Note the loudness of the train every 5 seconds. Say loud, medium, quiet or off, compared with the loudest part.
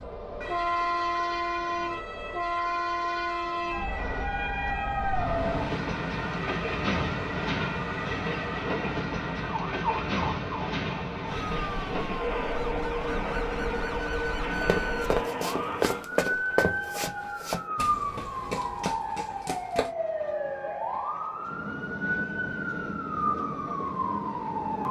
loud, loud, loud, medium, medium.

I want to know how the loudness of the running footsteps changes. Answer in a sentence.
The loudness of the running footsteps goes down.